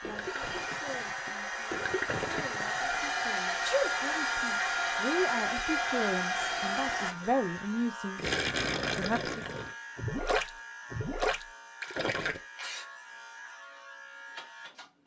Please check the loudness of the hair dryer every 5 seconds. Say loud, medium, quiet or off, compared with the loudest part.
loud, loud, off.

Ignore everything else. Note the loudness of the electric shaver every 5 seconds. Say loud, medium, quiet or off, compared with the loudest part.
loud, loud, medium.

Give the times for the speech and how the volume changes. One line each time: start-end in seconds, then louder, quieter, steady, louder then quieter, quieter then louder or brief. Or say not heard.
0.0-8.2 louder
8.9-9.4 brief.